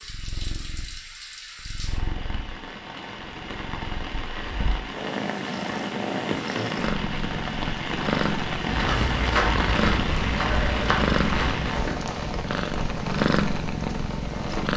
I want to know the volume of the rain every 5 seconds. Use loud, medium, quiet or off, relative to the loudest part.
medium, loud, loud.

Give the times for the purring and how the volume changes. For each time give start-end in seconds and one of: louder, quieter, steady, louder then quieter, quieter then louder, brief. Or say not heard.
0.0-14.7 louder.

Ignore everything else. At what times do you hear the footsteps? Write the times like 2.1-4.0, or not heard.
8.7-12.1.